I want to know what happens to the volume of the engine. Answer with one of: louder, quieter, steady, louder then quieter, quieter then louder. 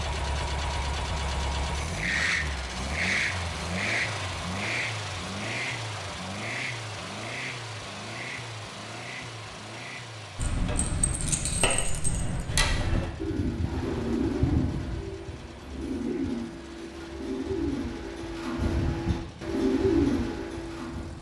quieter.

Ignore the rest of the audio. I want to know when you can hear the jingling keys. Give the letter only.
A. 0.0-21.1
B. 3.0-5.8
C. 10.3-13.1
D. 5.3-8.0
C.